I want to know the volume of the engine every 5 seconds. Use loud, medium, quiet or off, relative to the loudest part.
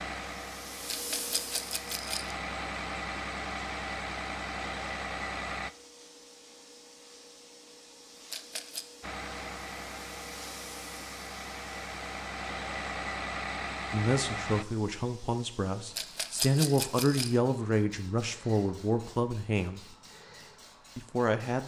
loud, loud, loud, off, off.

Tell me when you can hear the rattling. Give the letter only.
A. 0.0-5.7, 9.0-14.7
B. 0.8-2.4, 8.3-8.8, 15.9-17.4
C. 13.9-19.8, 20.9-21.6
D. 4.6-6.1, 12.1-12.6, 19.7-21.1
B.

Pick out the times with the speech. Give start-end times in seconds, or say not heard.
13.9-19.8, 20.9-21.6.